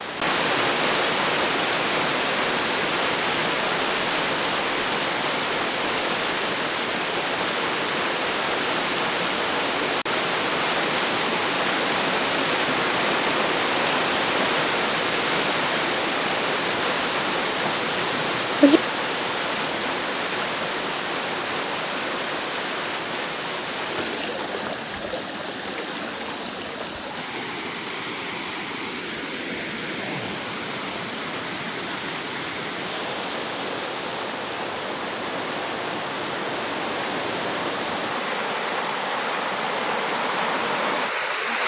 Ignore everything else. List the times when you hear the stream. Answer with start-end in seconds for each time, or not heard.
0.0-41.6.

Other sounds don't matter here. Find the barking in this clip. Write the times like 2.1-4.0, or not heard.
17.6-18.8.